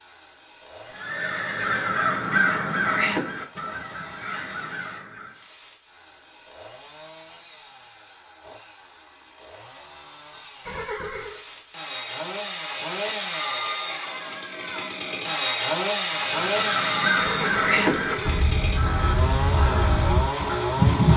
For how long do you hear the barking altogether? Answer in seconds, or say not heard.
not heard.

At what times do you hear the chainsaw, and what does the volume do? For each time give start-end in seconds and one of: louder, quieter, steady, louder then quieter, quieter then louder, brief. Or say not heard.
0.0-21.1 louder.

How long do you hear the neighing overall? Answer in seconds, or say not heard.
3 s.